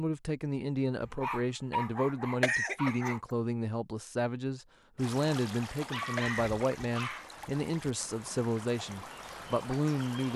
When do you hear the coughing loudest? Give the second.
3 s.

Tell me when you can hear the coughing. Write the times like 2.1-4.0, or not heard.
2.4-3.1, 6.2-7.0.